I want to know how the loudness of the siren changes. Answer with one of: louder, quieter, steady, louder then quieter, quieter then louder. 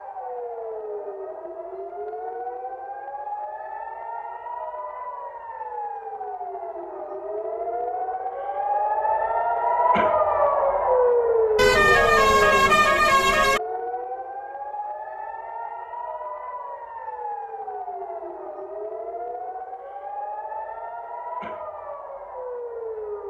louder then quieter.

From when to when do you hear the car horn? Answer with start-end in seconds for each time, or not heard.
11.6-13.6.